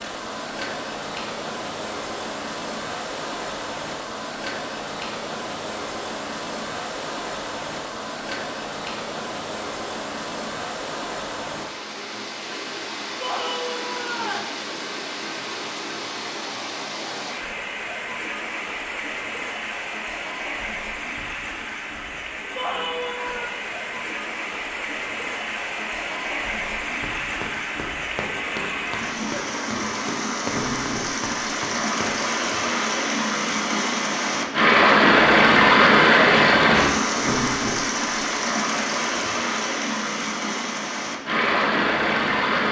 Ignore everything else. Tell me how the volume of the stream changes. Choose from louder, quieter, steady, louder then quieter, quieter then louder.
louder.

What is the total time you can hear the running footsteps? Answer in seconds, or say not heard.
6 s.